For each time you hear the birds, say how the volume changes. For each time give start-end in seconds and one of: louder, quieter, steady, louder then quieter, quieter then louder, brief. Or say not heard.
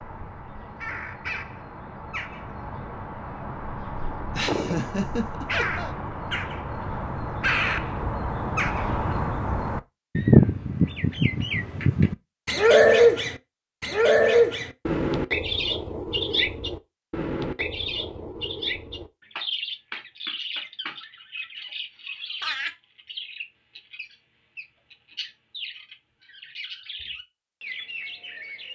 0.0-28.7 louder then quieter.